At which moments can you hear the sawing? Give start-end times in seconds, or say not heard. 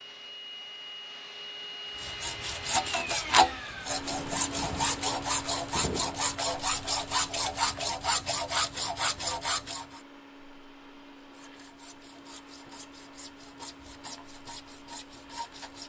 1.9-10.0, 11.2-15.8.